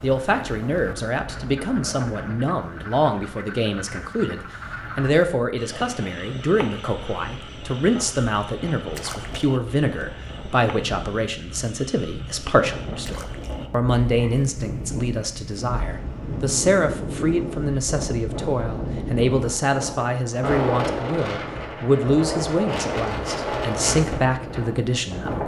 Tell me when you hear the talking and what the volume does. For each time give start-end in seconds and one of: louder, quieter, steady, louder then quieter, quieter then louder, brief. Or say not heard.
0.0-25.4 steady.